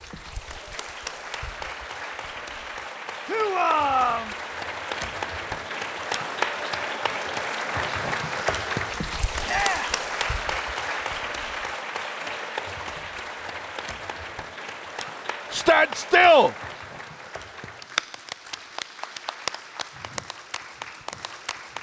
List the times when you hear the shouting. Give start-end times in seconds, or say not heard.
3.2-4.3, 9.4-10.0, 15.5-16.6.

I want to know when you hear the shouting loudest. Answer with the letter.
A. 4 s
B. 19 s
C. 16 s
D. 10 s
C.